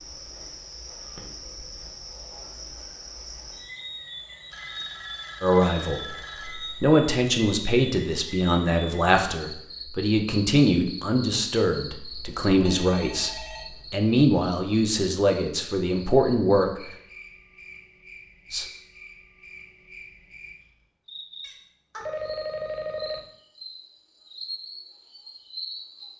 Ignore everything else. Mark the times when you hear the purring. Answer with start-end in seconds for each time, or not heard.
not heard.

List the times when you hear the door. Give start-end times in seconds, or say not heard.
not heard.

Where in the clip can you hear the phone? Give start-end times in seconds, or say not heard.
4.5-6.8, 12.1-14.1, 22.0-23.3.